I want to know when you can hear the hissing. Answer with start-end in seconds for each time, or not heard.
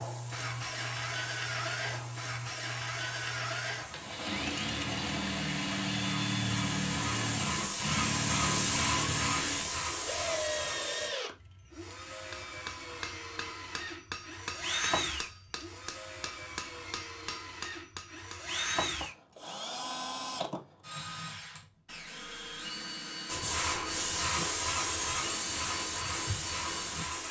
0.0-11.1, 23.2-27.2.